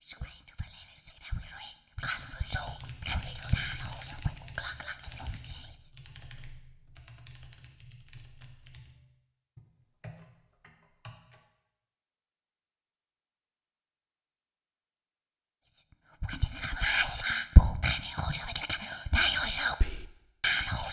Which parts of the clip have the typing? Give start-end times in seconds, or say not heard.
2.0-11.4.